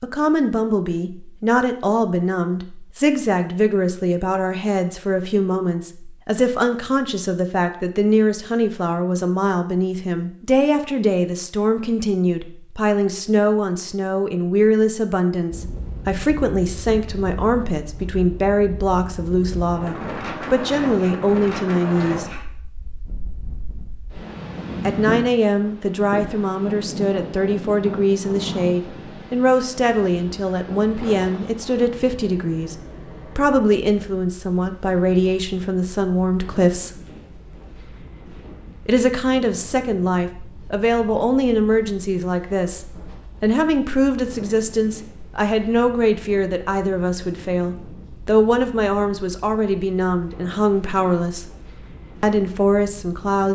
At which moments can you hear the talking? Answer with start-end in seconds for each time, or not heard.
0.0-22.3, 24.9-37.0, 38.9-51.5, 52.2-53.5.